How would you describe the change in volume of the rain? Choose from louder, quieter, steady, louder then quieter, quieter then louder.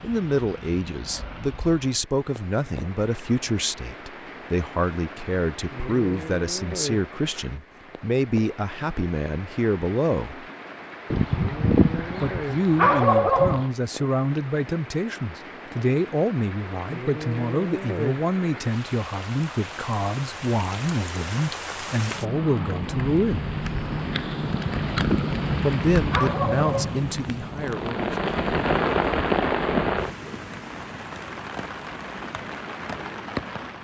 louder.